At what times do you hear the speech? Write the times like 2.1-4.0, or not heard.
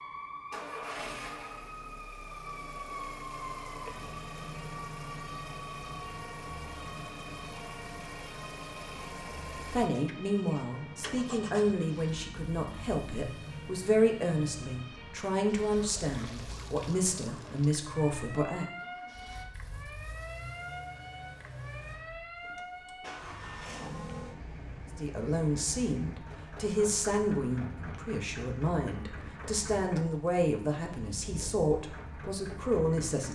9.7-18.6, 24.9-33.3.